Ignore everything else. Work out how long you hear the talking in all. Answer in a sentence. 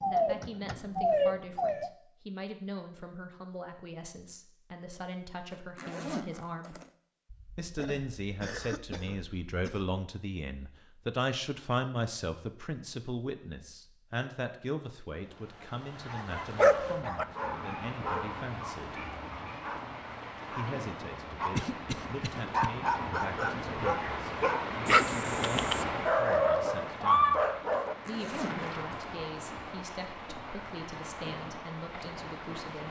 You can hear the talking for 30 seconds altogether.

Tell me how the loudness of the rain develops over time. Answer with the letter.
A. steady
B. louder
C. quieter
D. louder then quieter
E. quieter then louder
D.